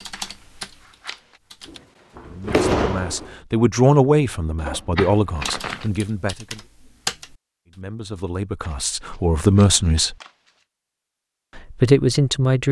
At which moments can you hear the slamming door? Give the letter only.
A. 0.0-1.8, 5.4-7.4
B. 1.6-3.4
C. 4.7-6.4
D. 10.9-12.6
B.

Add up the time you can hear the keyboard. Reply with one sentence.
You can hear the keyboard for 4 seconds altogether.